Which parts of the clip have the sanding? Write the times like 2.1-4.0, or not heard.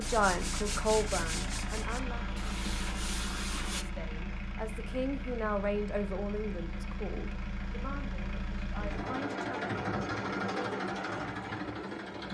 0.0-3.9.